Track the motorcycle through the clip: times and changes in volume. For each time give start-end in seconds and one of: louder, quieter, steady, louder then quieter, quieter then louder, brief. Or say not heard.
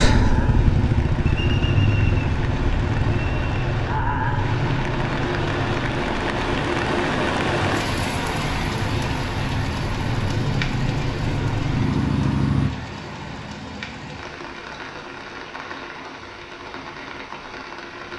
0.0-12.7 quieter then louder.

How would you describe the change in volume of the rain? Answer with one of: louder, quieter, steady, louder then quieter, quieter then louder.
louder then quieter.